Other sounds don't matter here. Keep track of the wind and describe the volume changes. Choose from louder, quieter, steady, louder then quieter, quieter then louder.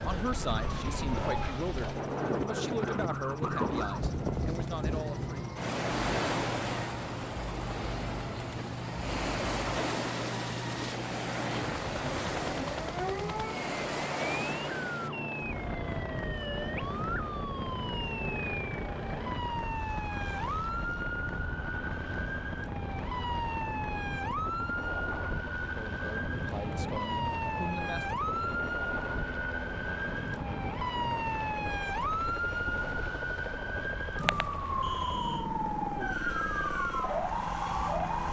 quieter.